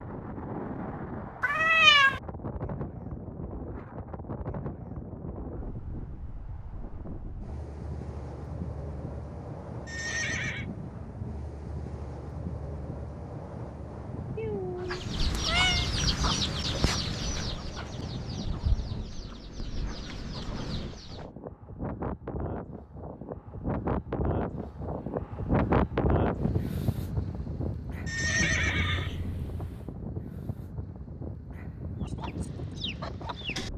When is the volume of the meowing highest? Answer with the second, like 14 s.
2 s.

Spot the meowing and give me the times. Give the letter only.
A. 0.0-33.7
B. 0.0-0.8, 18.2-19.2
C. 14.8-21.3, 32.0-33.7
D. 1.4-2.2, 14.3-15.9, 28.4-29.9
D.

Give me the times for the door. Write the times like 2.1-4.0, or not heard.
not heard.